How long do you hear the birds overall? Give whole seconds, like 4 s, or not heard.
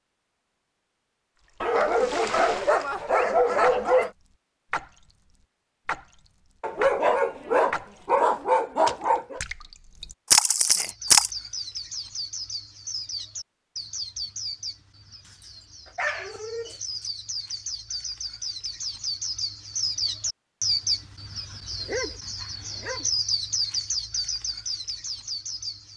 15 s.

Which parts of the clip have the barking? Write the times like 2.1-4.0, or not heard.
1.6-4.1, 6.6-9.4, 15.8-17.1, 21.8-23.1.